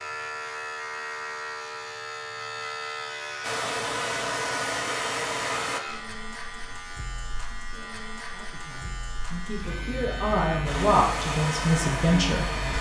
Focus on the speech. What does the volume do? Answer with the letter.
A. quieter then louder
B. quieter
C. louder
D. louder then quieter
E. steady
C.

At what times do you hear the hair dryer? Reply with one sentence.
You can hear the hair dryer from 3.4 to 5.8 s and from 10.7 to 12.7 s.